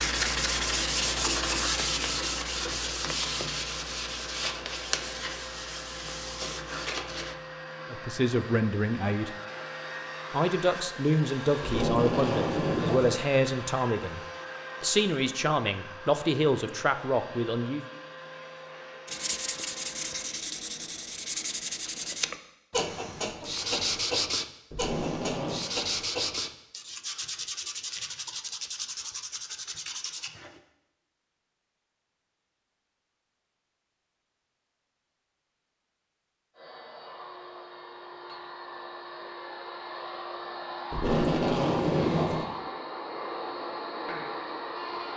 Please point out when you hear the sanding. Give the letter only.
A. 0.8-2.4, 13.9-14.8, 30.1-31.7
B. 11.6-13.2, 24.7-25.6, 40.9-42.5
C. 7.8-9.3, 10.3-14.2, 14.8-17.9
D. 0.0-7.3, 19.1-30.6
D.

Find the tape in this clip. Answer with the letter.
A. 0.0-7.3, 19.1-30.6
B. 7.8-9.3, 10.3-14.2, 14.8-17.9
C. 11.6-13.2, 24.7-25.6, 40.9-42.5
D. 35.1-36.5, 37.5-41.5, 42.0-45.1
C.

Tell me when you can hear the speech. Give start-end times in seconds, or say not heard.
7.8-9.3, 10.3-14.2, 14.8-17.9.